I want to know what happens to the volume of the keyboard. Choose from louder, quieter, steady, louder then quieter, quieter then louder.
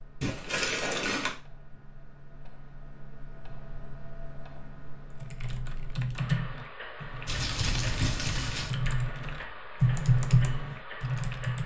quieter then louder.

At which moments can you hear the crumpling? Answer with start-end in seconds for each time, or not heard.
0.2-1.4, 7.2-8.7.